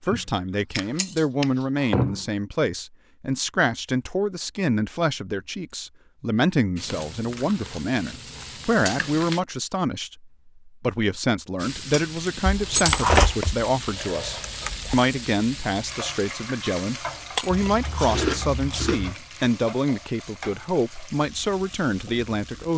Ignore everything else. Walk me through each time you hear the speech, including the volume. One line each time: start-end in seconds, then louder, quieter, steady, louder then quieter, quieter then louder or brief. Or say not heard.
0.0-22.7 steady.